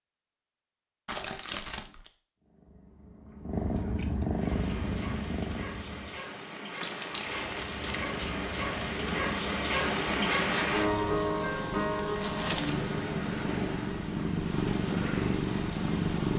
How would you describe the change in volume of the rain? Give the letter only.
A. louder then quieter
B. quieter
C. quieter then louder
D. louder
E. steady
A.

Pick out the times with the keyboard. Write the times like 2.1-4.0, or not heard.
not heard.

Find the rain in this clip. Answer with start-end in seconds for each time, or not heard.
4.3-16.3.